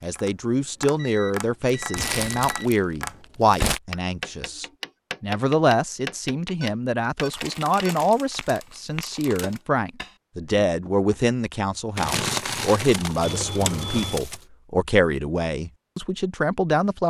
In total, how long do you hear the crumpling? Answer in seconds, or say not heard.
7 s.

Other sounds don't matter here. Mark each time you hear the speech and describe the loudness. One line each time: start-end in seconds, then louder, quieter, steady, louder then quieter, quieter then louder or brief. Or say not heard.
0.0-17.0 steady.